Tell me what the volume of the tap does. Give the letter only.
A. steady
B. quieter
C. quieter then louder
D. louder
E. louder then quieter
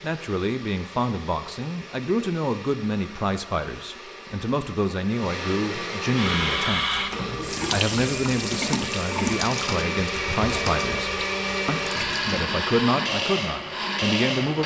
B.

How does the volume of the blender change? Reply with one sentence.
The volume of the blender goes up.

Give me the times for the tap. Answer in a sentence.
You can hear the tap from 6.1 to 12.4 s.